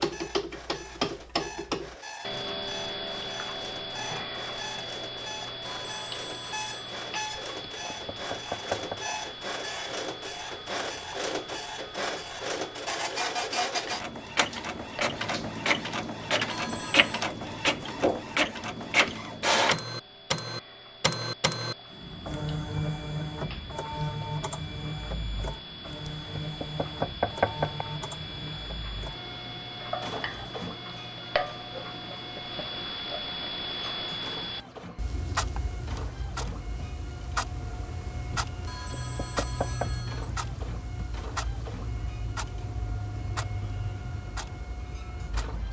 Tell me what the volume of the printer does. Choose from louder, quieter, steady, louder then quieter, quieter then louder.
louder then quieter.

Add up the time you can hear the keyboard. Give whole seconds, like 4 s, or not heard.
not heard.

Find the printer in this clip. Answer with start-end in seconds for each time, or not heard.
0.0-45.6.